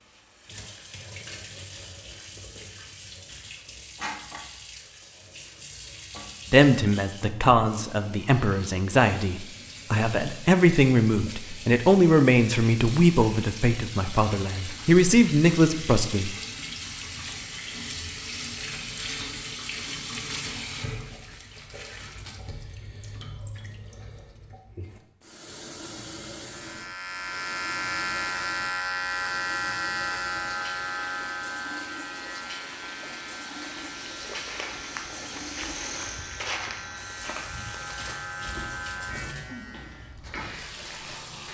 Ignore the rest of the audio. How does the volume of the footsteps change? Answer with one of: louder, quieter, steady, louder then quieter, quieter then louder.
quieter.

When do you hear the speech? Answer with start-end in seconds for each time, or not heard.
6.5-16.4.